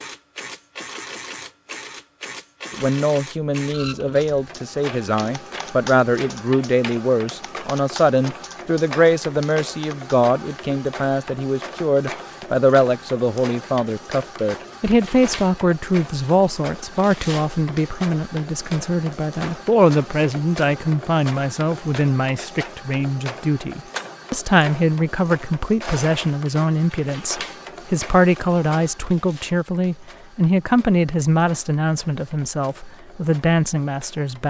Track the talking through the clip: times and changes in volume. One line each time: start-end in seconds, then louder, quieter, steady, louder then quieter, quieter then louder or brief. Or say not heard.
2.7-34.4 steady.